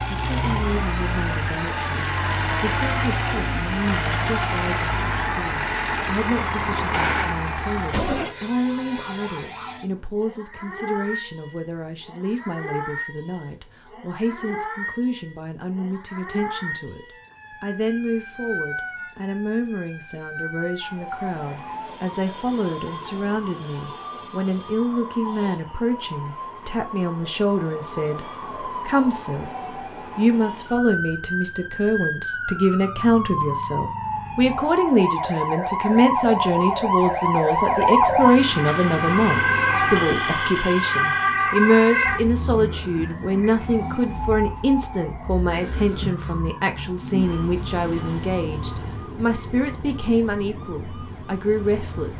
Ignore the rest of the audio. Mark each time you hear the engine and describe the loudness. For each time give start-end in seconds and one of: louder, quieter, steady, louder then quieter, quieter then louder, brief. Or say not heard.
0.0-8.3 steady.